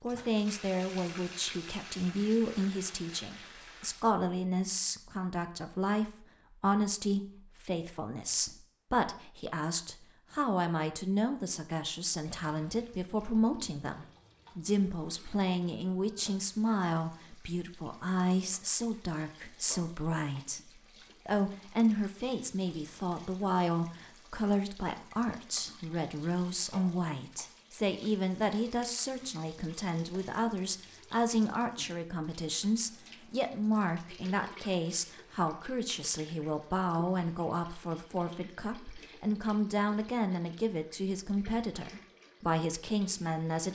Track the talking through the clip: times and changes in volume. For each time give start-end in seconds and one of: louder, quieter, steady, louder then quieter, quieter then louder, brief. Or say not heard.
0.0-43.6 steady.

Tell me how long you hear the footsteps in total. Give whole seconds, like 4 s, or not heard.
not heard.